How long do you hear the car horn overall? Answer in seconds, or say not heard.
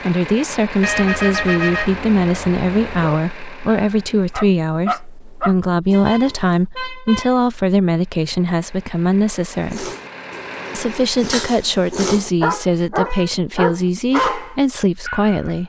5 s.